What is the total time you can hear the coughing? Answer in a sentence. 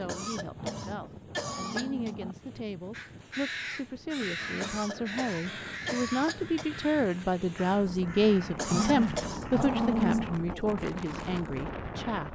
The coughing can be heard for 5 seconds in total.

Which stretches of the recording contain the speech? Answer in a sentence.
You can hear the speech from 0.0 to 12.3 s.